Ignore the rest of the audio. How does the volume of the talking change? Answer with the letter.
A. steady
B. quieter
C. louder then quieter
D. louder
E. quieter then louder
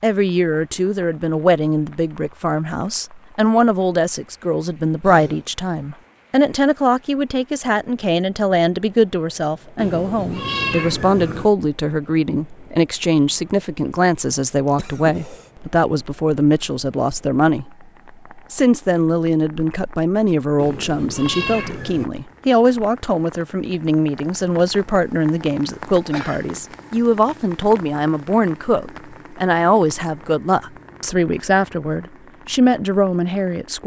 A.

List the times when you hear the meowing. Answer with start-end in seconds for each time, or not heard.
9.8-11.5, 20.6-22.1.